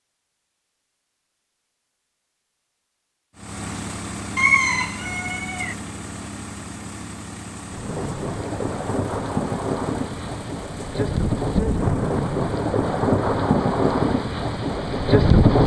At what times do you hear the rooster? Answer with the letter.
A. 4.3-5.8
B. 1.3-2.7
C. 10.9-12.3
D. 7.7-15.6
A.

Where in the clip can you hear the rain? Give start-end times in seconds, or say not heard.
7.7-15.6.